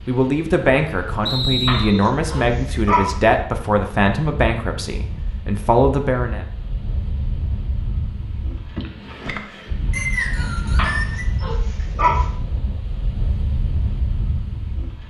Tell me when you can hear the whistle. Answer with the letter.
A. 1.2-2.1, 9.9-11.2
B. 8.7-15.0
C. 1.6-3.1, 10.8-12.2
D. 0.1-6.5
A.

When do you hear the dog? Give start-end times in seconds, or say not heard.
1.6-3.1, 10.8-12.2.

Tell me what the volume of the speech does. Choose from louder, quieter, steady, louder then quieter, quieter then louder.
steady.